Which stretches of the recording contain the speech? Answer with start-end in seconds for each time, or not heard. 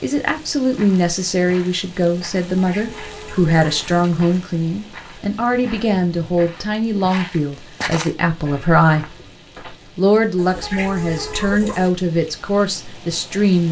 0.0-9.1, 9.9-13.6.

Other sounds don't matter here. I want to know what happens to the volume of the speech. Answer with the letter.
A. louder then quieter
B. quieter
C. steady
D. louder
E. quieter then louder
C.